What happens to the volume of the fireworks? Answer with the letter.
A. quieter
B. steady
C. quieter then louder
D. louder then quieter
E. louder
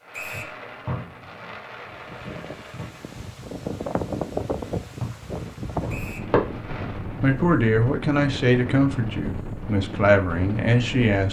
C.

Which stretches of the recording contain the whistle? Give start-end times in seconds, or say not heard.
0.1-0.6, 5.8-6.3.